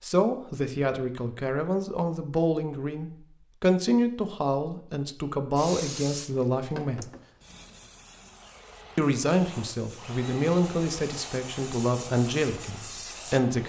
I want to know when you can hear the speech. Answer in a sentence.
The speech can be heard from 0.0 to 7.1 s and from 8.9 to 13.6 s.